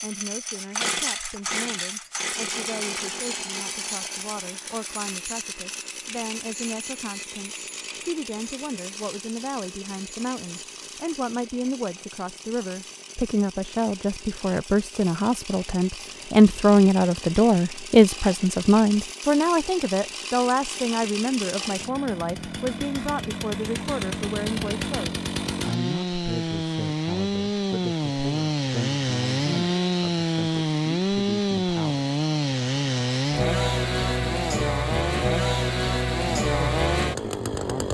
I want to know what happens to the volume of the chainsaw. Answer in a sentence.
The volume of the chainsaw goes down, then up.